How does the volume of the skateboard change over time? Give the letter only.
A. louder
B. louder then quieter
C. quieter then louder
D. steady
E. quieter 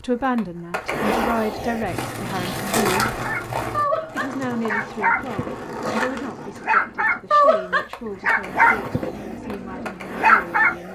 C.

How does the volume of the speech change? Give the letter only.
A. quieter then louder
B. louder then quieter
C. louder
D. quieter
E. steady
D.